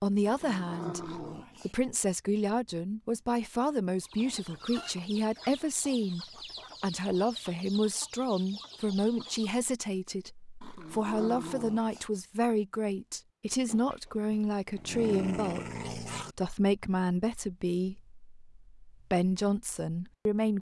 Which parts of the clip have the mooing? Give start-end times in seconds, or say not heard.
not heard.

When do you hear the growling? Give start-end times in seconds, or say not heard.
0.2-1.8, 10.6-12.1, 14.3-16.4.